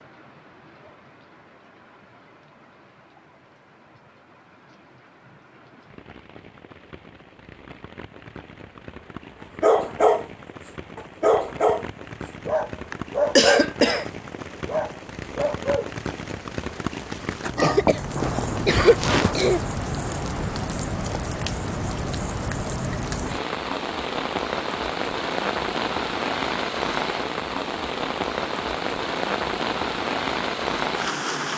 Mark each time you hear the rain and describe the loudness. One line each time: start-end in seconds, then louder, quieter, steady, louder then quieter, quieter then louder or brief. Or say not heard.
0.0-31.5 louder.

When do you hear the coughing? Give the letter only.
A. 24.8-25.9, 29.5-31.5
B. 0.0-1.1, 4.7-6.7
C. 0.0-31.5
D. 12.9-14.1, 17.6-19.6
D.